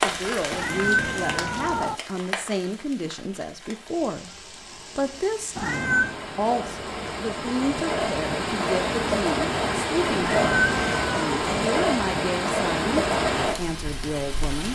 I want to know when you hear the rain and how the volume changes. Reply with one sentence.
You can hear the rain from 0.0 to 14.7 s, getting quieter then louder.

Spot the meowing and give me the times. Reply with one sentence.
You can hear the meowing from 0.5 to 1.9 s, from 5.5 to 6.2 s and from 10.2 to 11.3 s.